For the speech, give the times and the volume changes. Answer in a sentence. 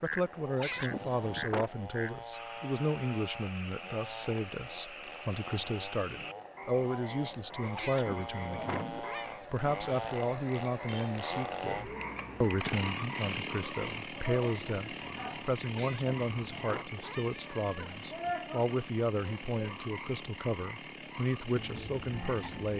The speech can be heard from 0.0 to 22.7 s, at a steady volume.